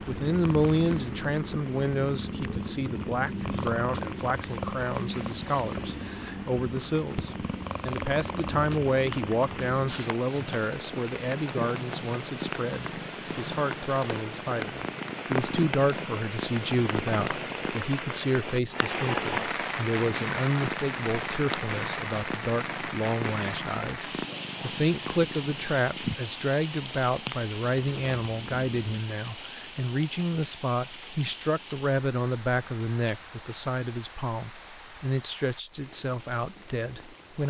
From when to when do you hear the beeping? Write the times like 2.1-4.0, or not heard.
not heard.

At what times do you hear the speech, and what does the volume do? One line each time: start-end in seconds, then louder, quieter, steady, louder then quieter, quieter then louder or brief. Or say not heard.
0.1-37.4 steady.